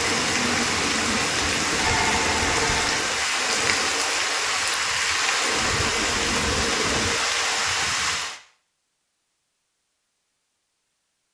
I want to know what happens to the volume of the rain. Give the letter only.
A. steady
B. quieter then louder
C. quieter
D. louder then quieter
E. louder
A.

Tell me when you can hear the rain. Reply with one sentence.
The rain can be heard from 0.0 to 8.4 s.